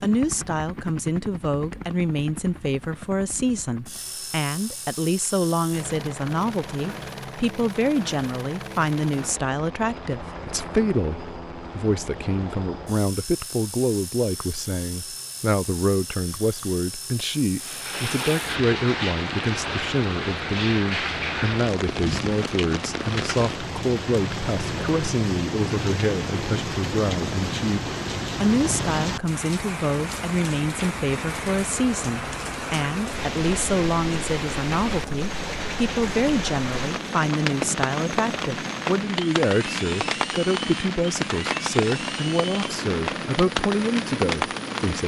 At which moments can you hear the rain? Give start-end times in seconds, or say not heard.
17.6-45.0.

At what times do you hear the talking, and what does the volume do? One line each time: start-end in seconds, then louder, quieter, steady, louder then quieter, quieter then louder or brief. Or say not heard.
0.0-45.0 steady.